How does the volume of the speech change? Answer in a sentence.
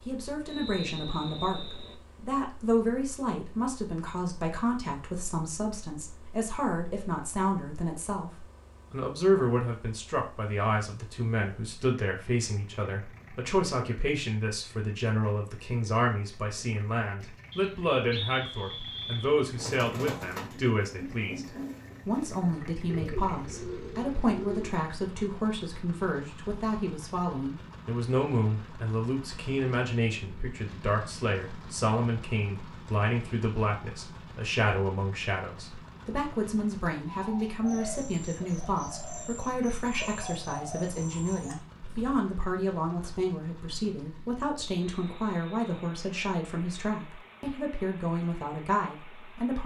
The loudness of the speech stays about the same.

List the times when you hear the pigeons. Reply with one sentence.
You can hear the pigeons from 19.6 to 24.7 s and from 37.0 to 42.1 s.